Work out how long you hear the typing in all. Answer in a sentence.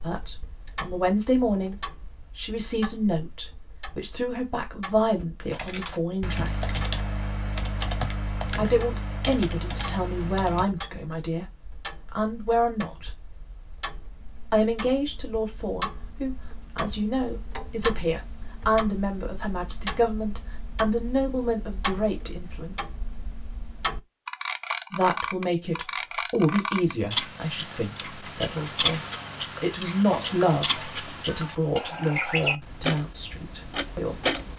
You can hear the typing for 5 seconds altogether.